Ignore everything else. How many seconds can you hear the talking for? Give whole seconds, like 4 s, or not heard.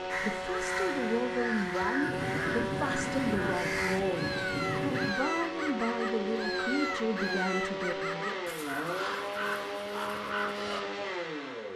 8 s.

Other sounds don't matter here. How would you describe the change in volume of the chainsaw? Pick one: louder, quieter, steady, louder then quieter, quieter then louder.
steady.